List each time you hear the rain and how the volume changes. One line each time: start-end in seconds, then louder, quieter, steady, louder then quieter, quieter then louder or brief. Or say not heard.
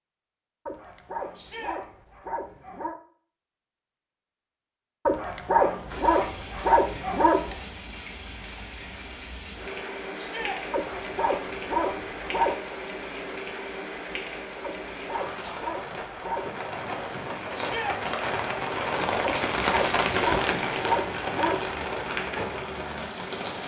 5.8-23.6 louder.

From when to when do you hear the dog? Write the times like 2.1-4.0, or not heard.
0.7-3.0, 5.0-7.7, 10.7-12.6, 14.6-16.6, 19.2-21.8.